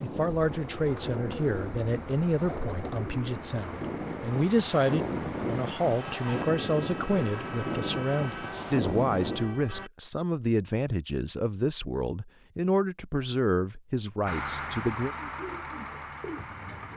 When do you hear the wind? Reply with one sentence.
The wind can be heard from 0.0 to 9.5 s.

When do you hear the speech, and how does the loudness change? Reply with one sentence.
You can hear the speech from 0.0 to 15.2 s, at a steady volume.